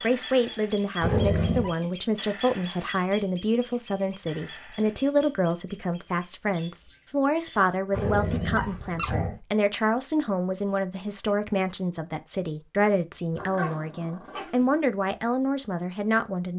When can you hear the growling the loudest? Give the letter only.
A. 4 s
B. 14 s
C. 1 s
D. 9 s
C.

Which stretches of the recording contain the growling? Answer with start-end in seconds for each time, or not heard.
1.0-1.8, 7.9-9.3, 13.3-14.8.